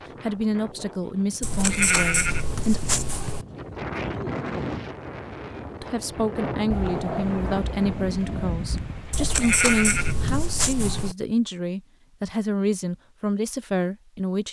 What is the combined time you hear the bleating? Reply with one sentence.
You can hear the bleating for 4 seconds altogether.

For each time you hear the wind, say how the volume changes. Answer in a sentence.
The wind can be heard from 0.0 to 11.0 s, getting louder.